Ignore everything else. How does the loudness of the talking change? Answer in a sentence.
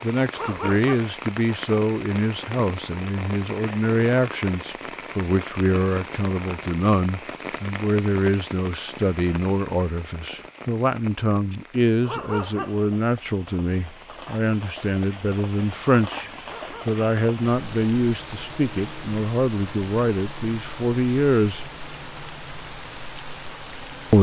The volume of the talking stays about the same.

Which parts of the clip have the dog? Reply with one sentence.
The dog can be heard from 0.3 to 1.1 s, from 12.1 to 12.8 s and from 16.5 to 16.9 s.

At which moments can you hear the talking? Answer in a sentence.
The talking can be heard from 0.0 to 21.7 s.